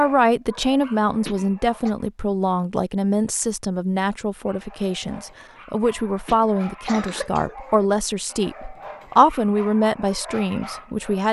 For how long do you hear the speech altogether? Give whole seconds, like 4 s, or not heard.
11 s.